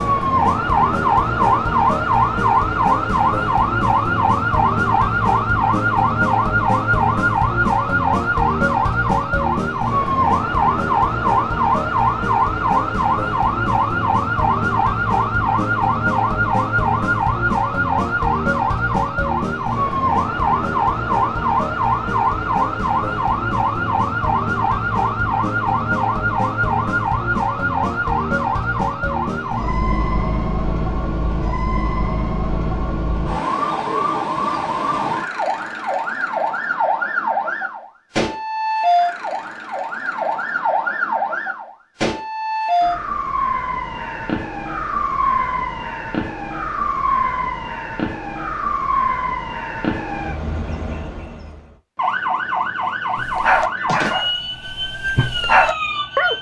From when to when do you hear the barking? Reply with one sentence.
The barking can be heard from 53.1 to 56.3 s.